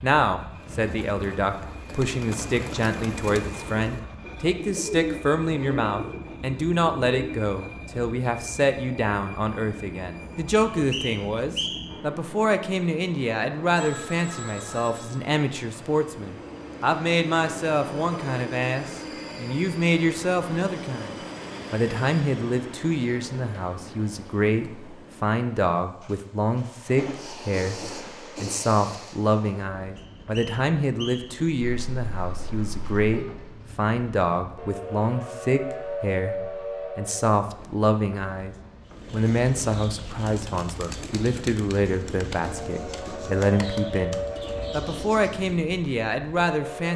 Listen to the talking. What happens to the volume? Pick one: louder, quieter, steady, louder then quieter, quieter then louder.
steady.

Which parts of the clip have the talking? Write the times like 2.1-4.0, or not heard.
0.0-46.9.